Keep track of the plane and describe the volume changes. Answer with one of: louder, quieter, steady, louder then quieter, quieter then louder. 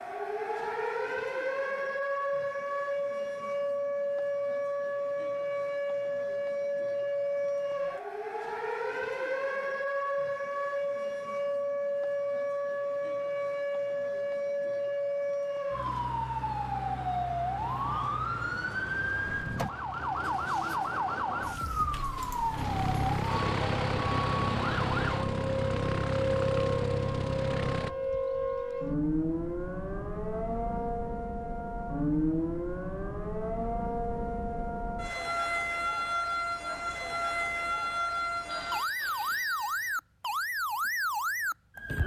louder.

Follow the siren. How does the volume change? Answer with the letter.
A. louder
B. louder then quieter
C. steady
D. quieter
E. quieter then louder
C.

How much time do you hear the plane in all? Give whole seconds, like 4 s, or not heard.
10 s.